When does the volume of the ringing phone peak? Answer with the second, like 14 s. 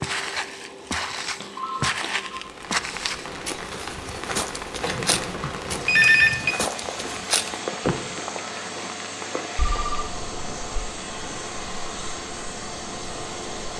6 s.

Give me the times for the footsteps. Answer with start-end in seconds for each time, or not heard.
0.0-8.2.